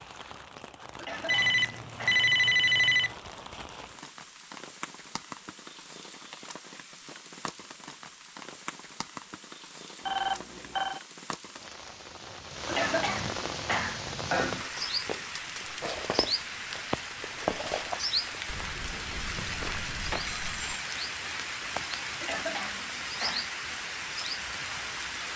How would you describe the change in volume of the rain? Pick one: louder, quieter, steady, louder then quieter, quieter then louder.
louder.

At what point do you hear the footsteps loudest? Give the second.
18 s.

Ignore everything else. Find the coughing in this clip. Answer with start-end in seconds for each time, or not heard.
0.9-2.3, 12.7-14.7, 22.2-23.5.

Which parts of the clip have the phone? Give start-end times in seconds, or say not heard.
1.2-3.1, 10.1-11.0, 19.1-20.9.